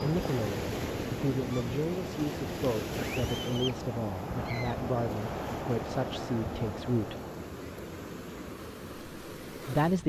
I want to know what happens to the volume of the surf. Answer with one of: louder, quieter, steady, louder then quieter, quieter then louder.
quieter.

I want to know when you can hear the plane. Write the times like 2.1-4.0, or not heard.
0.0-7.5.